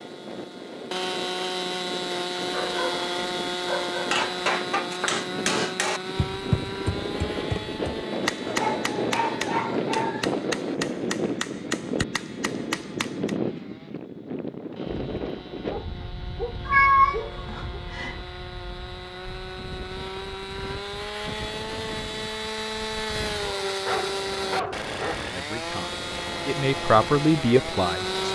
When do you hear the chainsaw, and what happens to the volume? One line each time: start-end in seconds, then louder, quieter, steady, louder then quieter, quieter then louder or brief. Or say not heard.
0.0-28.3 quieter then louder.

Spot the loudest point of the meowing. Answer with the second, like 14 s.
17 s.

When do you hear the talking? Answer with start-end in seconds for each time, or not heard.
25.2-28.2.